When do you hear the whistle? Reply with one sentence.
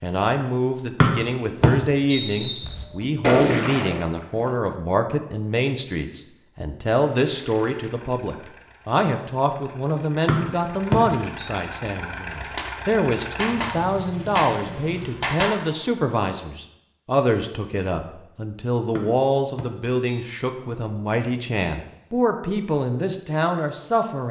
The whistle can be heard from 1.0 to 2.8 s, from 10.2 to 11.5 s and from 18.9 to 20.2 s.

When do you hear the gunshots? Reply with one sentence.
You can hear the gunshots from 2.6 to 4.5 s and from 12.2 to 15.8 s.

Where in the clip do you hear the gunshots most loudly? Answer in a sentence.
The volume of the gunshots peaks at 3 seconds.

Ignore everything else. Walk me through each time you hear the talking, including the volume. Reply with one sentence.
You can hear the talking from 0.0 to 24.2 s, at a steady volume.